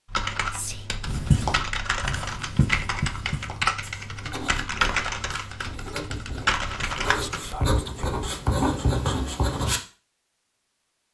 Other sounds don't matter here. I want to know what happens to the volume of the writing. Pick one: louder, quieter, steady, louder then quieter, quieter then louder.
quieter then louder.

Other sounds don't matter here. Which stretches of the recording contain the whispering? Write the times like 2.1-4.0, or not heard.
0.5-0.9, 7.1-8.2.